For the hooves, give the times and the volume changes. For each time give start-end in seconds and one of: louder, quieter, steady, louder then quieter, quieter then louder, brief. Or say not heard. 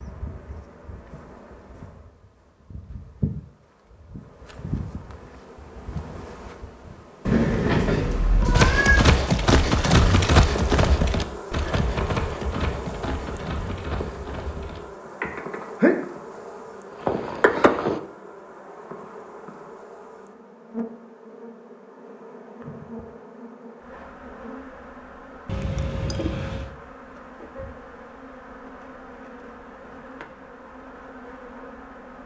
8.5-16.2 quieter
16.9-18.0 brief.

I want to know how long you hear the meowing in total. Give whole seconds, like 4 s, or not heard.
3 s.